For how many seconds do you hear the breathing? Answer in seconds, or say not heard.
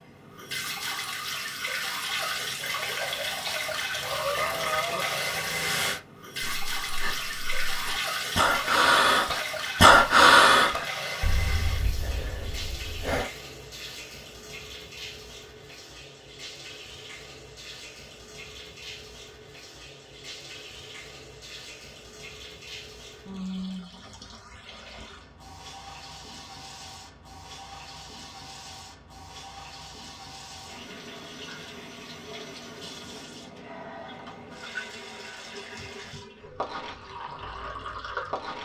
9 s.